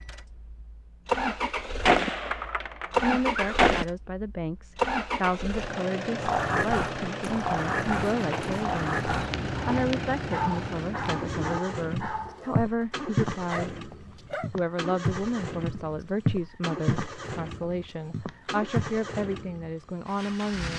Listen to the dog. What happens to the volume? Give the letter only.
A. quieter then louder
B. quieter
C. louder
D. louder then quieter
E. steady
B.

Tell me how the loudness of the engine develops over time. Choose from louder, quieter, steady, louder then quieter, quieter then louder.
quieter.